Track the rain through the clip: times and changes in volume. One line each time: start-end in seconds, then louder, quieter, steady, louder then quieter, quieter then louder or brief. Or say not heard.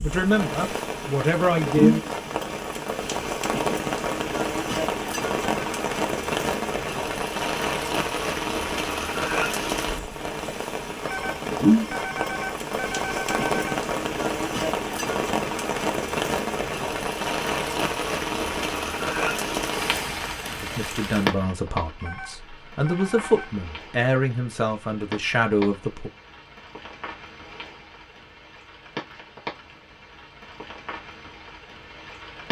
0.0-32.4 quieter.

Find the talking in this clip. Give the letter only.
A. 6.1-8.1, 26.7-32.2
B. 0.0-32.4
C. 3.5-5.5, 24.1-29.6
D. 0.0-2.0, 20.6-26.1
D.